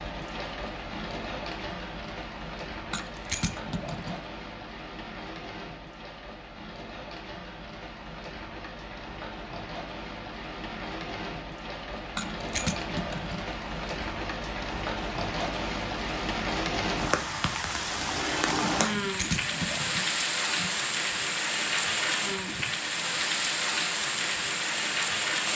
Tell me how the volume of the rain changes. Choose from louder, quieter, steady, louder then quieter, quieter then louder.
louder.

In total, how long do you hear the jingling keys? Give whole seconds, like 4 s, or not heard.
4 s.